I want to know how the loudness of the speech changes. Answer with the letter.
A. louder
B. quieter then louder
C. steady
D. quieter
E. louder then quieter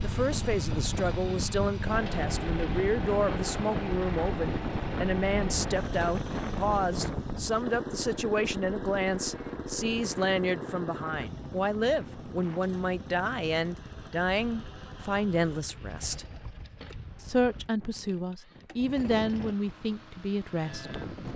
C.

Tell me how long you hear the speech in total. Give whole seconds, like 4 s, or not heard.
20 s.